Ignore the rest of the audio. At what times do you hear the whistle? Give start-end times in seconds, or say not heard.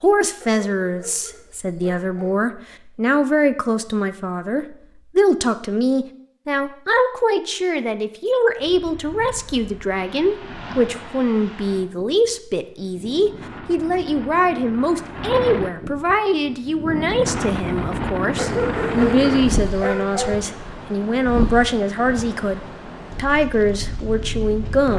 not heard.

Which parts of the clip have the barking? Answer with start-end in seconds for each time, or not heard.
0.4-2.4, 18.4-20.4.